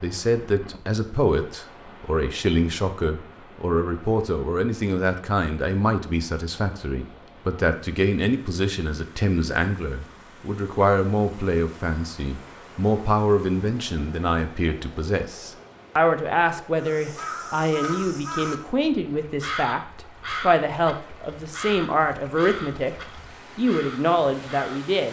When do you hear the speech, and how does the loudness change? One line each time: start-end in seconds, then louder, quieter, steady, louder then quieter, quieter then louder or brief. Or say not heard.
0.0-22.9 steady
23.6-25.0 brief.